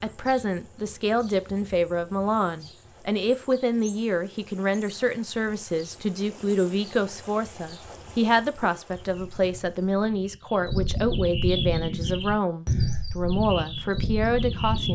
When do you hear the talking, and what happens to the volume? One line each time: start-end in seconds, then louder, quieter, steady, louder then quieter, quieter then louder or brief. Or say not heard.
0.0-14.9 steady.